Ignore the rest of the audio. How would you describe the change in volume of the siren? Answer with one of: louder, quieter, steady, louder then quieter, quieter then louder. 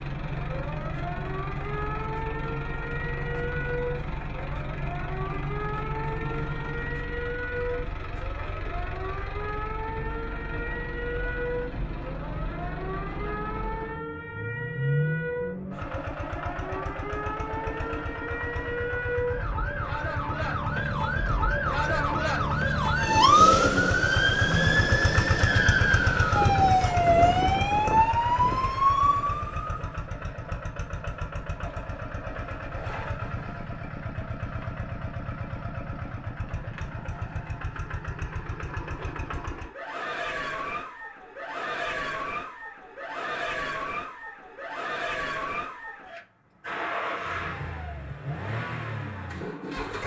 louder.